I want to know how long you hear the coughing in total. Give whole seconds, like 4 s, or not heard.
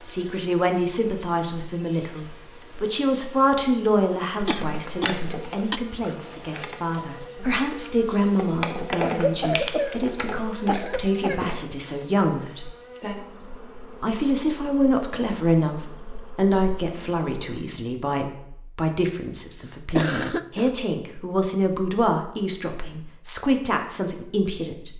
5 s.